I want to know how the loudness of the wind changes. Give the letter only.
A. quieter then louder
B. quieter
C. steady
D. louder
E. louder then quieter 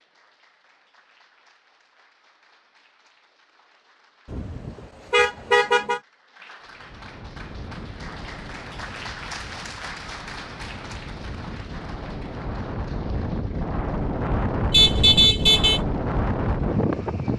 D.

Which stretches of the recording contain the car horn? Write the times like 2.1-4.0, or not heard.
4.3-6.0, 14.7-15.8.